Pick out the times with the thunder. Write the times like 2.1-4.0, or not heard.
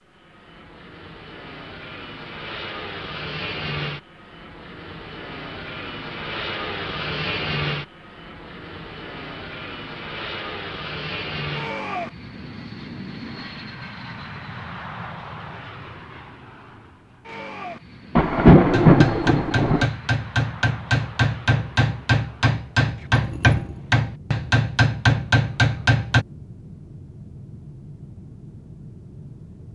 18.1-19.9.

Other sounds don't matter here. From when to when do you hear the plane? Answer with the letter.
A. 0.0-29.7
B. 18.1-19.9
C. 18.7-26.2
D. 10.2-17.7
A.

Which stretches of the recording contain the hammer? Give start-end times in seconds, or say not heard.
18.7-26.2.